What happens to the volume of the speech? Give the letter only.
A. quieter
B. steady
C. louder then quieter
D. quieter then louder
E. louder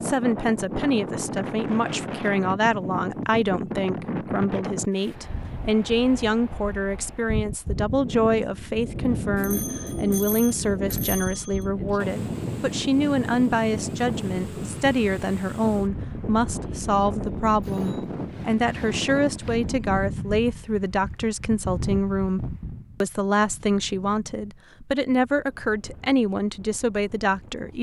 B.